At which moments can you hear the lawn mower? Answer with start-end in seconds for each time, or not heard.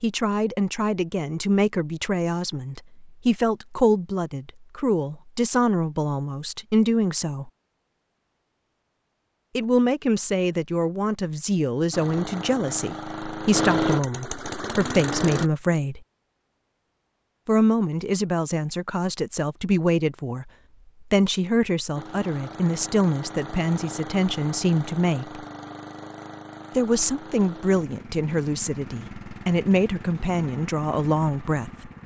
11.9-15.5, 21.9-32.0.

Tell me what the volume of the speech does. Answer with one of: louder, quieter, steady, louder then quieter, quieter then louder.
steady.